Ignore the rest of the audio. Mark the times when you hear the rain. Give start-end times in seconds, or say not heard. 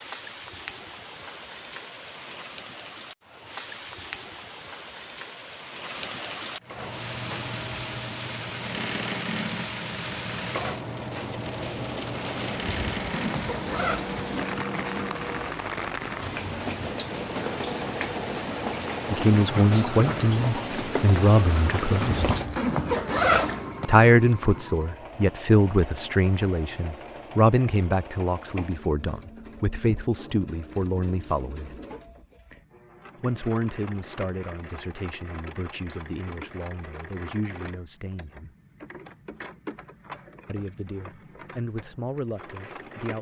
0.0-22.5.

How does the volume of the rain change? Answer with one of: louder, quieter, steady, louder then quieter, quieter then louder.
louder.